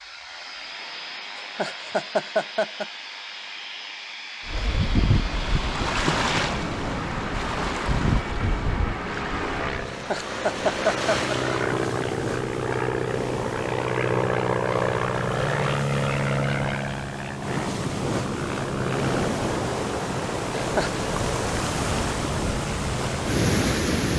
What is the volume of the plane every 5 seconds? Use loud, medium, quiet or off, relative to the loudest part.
medium, medium, loud, loud, medium.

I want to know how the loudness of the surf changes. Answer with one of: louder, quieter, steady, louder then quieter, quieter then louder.
quieter then louder.